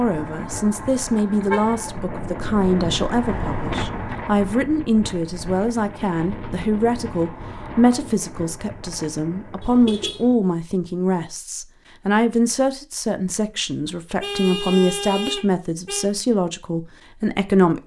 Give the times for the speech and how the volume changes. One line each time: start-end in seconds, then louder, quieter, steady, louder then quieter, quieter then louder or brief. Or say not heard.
0.0-17.8 steady.